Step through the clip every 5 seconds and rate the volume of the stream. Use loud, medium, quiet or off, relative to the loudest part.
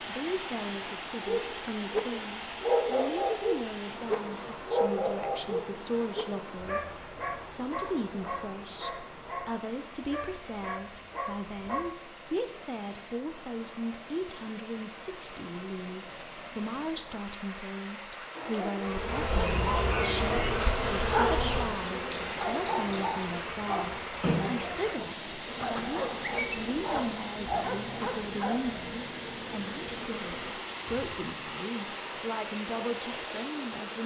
loud, medium, medium, medium, loud, loud, loud.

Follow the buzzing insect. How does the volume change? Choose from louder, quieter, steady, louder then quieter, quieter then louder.
quieter.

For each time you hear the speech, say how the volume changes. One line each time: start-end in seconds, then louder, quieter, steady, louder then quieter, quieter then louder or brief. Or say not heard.
0.1-34.0 steady.